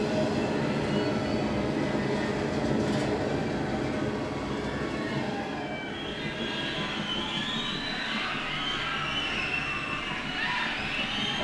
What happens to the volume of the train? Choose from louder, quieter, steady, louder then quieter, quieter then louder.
quieter.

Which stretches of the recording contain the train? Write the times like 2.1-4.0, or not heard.
0.0-11.3.